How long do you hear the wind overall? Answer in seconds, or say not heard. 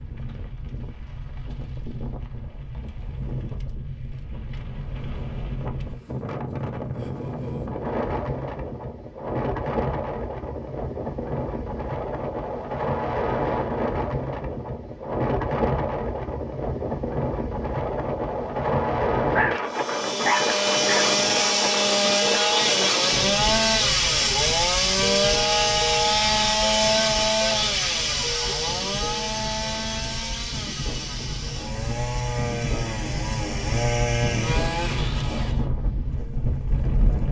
37 s.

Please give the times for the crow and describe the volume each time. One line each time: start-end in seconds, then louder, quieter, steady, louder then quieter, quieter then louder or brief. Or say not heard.
not heard.